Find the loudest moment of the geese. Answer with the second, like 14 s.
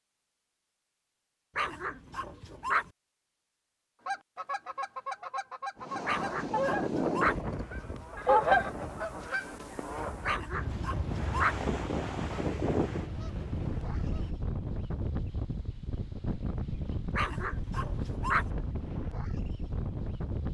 8 s.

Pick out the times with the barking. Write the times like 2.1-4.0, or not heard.
1.6-2.9, 6.0-7.4, 10.2-11.6, 17.1-18.5.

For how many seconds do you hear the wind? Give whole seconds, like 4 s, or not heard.
15 s.